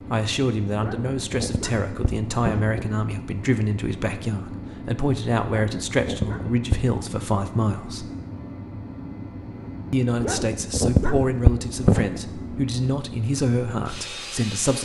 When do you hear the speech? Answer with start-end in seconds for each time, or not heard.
0.1-8.1, 9.9-14.7.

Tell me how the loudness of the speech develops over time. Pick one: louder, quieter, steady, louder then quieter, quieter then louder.
steady.